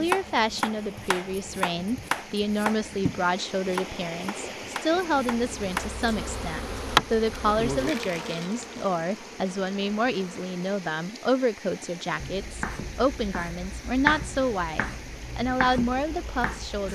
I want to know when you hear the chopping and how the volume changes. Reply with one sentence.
The chopping can be heard from 0.0 to 6.0 s, getting quieter; and from 12.2 to 16.8 s, getting louder then quieter.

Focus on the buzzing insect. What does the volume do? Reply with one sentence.
The volume of the buzzing insect goes up, then down.